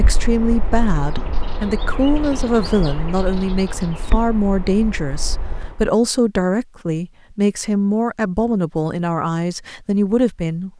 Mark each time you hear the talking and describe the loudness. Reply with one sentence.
The talking can be heard from 0.0 to 10.7 s, at a steady volume.